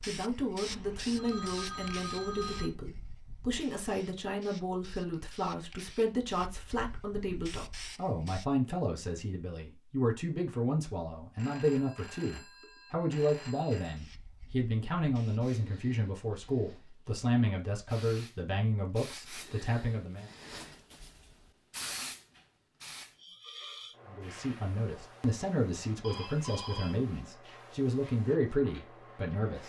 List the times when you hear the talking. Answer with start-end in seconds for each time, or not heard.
0.0-20.3, 24.1-29.6.